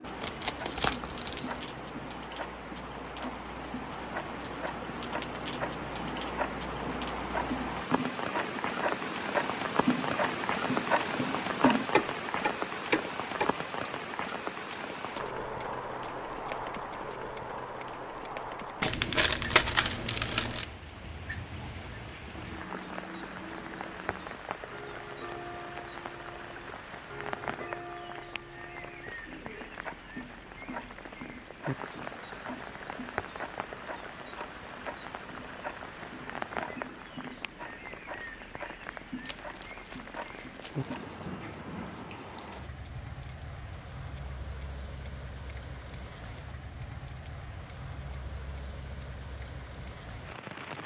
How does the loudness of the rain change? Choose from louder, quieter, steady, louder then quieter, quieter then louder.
quieter.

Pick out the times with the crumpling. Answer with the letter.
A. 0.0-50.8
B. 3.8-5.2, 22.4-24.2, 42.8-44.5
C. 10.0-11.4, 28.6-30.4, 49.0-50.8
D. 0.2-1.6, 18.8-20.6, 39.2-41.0
D.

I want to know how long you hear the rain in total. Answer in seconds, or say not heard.
51 s.